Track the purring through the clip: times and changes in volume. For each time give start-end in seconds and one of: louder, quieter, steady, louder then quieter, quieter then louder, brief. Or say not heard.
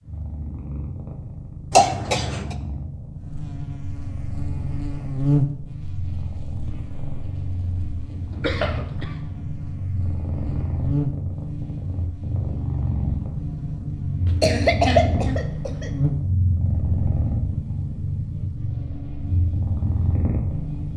0.0-20.9 louder.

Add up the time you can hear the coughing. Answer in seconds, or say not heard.
3 s.